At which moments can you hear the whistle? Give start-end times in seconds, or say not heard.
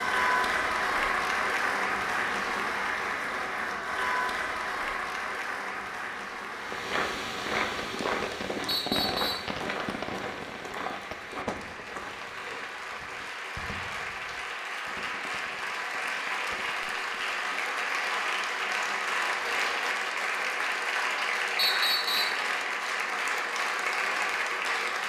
8.7-9.5, 21.6-22.4.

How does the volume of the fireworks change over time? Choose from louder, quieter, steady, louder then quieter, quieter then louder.
quieter.